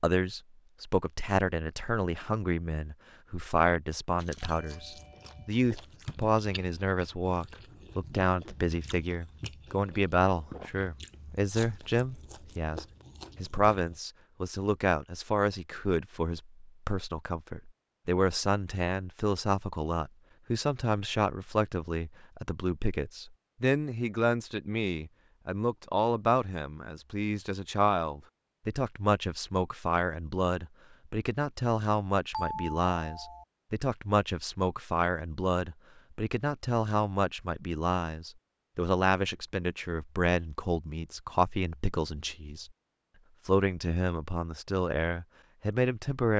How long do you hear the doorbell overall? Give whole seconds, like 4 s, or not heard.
2 s.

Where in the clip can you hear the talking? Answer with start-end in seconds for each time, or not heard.
0.0-42.7, 43.5-46.3.